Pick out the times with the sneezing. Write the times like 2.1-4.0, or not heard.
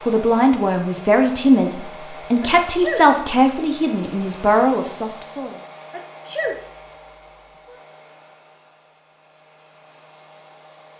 2.4-3.1, 5.9-6.6.